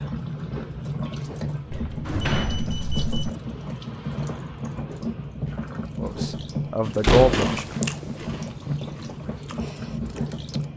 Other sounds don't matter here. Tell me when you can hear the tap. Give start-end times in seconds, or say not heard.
0.0-10.7.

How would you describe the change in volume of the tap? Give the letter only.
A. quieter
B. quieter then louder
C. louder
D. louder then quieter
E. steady
E.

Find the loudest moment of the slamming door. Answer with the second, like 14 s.
7 s.